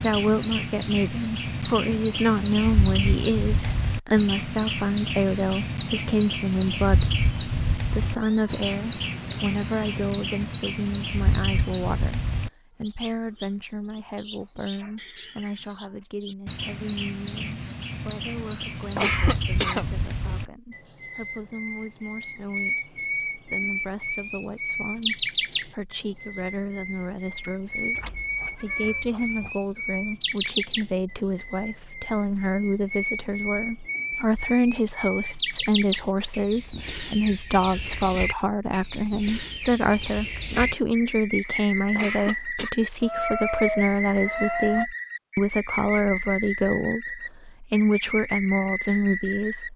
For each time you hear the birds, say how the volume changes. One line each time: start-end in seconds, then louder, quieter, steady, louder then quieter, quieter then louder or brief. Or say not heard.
0.0-49.7 steady.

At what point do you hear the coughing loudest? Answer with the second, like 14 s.
19 s.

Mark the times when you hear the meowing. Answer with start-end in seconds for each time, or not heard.
8.0-10.0, 27.9-29.5, 43.0-44.9.